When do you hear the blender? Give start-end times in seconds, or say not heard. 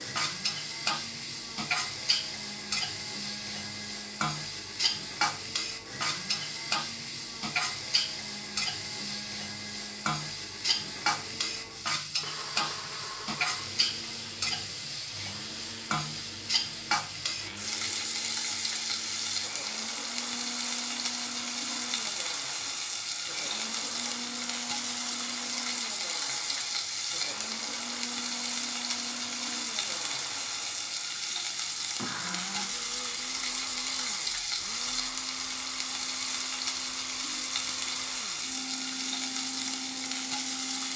0.0-40.9.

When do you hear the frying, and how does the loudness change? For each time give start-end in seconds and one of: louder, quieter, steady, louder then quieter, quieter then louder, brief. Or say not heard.
0.0-40.9 steady.